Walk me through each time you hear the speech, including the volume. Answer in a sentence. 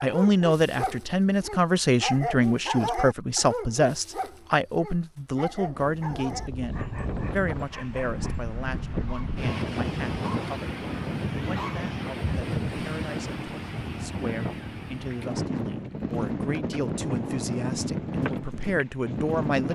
You can hear the speech from 0.0 to 19.7 s, getting quieter then louder.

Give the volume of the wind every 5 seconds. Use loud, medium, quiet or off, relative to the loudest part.
off, loud, loud, loud.